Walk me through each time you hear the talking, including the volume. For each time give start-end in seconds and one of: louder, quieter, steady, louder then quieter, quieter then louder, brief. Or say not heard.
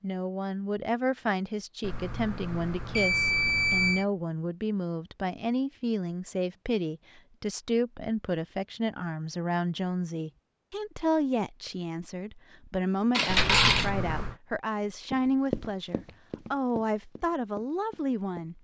0.0-18.5 steady.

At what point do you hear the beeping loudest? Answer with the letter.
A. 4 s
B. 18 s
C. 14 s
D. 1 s
A.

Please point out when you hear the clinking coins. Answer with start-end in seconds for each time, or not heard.
13.1-13.9.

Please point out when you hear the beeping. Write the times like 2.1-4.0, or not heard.
1.8-4.0, 13.3-14.4.